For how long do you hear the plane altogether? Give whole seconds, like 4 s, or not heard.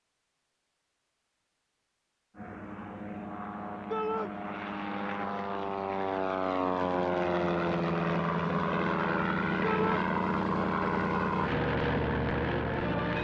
11 s.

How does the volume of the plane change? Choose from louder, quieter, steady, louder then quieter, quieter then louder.
louder.